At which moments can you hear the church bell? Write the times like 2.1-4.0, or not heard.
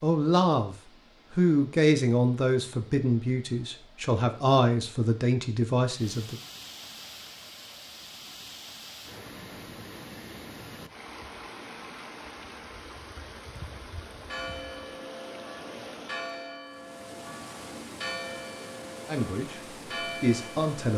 14.1-20.9.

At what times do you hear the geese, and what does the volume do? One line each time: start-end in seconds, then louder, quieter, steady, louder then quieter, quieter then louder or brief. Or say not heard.
not heard.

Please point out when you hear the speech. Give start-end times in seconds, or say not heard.
0.0-6.3, 19.1-20.9.